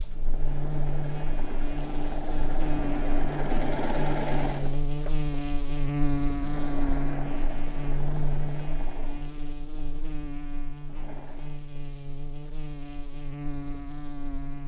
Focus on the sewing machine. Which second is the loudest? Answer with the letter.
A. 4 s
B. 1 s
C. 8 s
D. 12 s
A.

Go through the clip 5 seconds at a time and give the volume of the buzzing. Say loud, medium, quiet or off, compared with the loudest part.
loud, loud, medium.